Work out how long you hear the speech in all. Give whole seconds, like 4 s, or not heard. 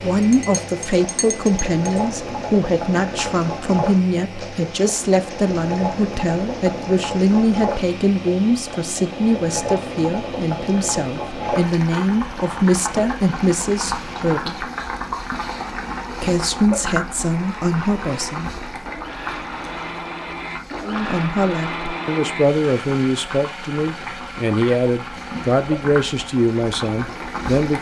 24 s.